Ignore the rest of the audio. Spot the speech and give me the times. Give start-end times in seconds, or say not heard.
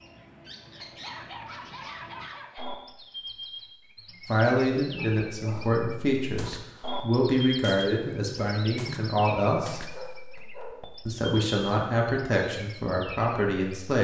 4.2-9.9, 11.1-13.9.